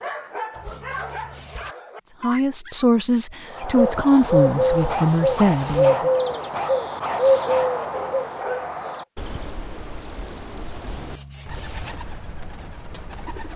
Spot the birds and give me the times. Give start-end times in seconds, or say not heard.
3.5-13.5.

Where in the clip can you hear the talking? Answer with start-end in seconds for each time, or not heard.
2.2-6.1.